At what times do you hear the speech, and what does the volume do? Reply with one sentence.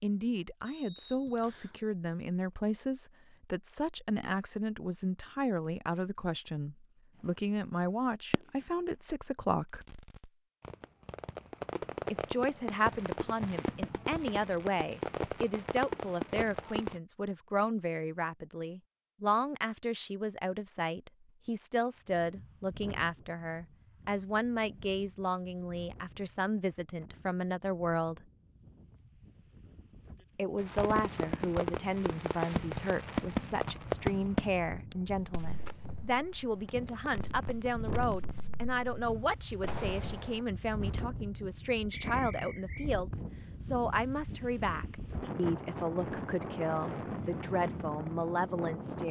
You can hear the speech from 0.0 to 9.8 s, at a steady volume; from 12.1 to 28.2 s, at a steady volume; and from 30.4 to 49.0 s, at a steady volume.